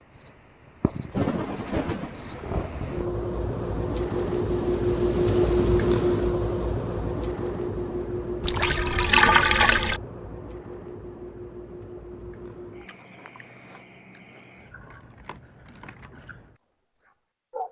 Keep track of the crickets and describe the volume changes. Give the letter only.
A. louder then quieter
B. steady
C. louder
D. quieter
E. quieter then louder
A.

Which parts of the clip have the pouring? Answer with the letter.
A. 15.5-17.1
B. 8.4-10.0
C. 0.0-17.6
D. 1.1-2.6
B.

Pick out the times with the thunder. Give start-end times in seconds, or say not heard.
1.1-2.6.